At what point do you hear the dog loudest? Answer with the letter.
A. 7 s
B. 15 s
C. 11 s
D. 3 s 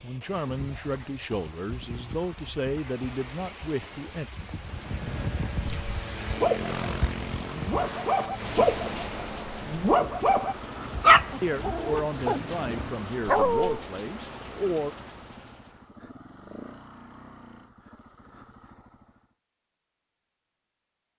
C.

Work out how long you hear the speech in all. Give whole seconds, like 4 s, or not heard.
8 s.